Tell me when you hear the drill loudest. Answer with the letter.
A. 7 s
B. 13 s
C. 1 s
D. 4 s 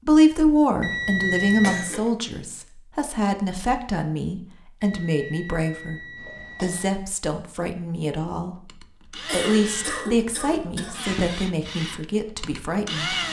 B.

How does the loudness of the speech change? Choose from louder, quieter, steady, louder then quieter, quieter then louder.
quieter.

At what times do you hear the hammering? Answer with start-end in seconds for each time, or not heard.
not heard.